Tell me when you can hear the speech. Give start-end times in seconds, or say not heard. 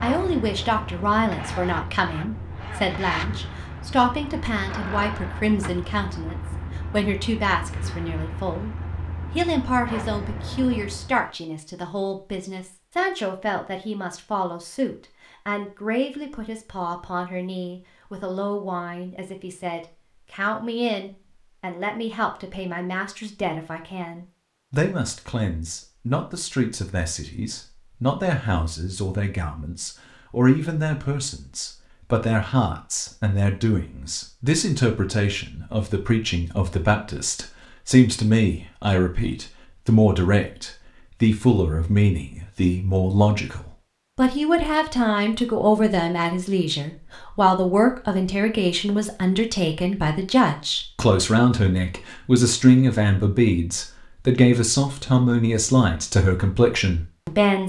0.0-57.6.